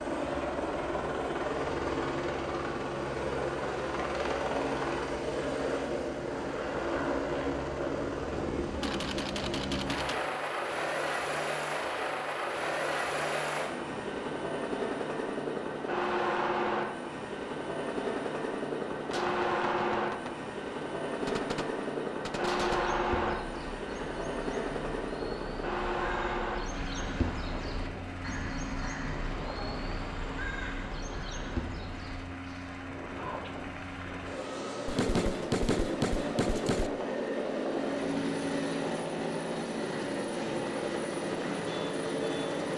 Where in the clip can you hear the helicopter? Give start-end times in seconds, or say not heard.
0.0-42.7.